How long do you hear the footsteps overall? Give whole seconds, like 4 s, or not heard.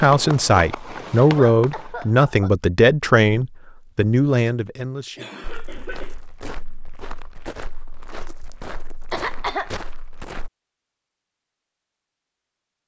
5 s.